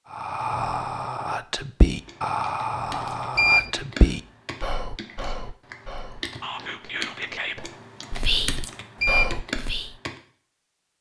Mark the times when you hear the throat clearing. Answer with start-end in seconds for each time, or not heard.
not heard.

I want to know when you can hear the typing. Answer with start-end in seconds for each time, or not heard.
1.9-10.2.